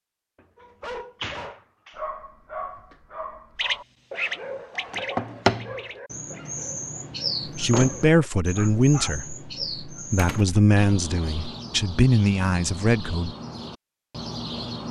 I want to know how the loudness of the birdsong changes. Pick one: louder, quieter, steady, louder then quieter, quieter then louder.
quieter.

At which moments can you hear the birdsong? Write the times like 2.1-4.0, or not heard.
3.5-14.8.